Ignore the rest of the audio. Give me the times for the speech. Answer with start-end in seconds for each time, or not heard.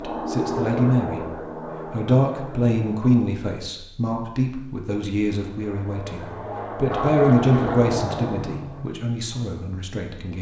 0.0-1.2, 1.9-10.3.